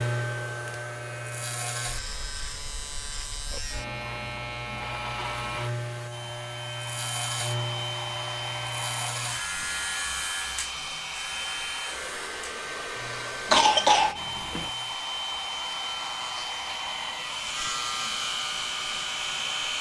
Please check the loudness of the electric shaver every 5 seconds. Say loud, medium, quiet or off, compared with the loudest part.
loud, loud, medium, loud.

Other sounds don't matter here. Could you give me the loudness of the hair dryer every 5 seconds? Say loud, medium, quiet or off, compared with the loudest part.
medium, loud, loud, loud.